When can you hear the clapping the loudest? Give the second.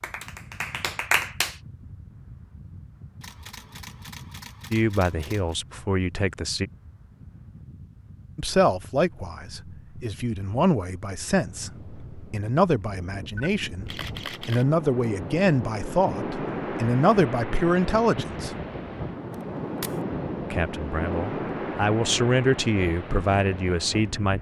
1 s.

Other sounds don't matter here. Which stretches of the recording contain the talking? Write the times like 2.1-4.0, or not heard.
4.7-6.7, 8.3-18.6, 20.5-24.3.